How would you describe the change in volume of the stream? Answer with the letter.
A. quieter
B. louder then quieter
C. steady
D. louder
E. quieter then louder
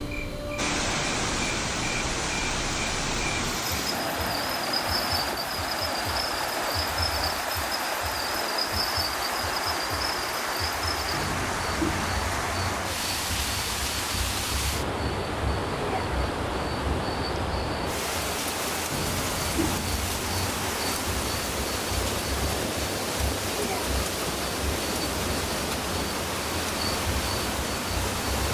C.